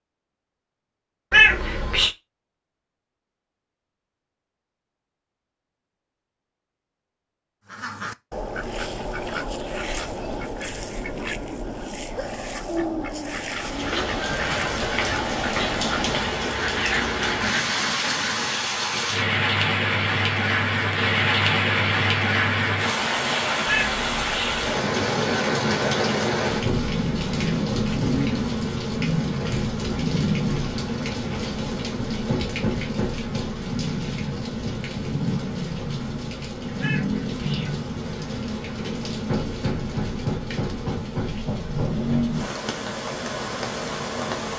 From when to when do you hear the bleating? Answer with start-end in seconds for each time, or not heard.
not heard.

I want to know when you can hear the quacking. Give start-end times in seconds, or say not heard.
7.7-18.6.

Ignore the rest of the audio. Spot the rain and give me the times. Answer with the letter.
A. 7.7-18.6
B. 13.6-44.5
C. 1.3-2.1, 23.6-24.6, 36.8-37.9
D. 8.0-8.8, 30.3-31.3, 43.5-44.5
B.